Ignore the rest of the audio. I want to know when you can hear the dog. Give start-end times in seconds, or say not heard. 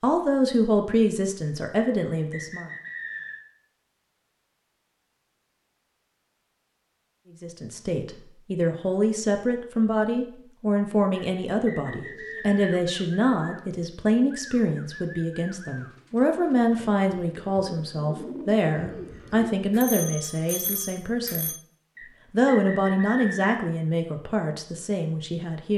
not heard.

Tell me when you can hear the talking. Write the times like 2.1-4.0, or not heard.
0.0-2.7, 7.4-21.5, 22.3-25.7.